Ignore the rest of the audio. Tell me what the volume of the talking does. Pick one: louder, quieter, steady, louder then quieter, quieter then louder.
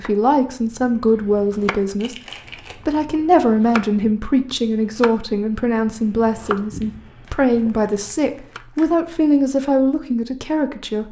steady.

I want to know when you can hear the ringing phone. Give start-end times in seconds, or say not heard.
not heard.